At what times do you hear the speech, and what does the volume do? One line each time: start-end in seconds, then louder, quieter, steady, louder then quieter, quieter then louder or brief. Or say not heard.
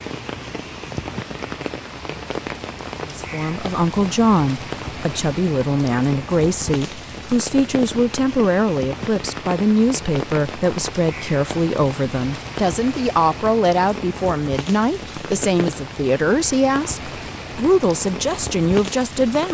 3.0-19.4 steady.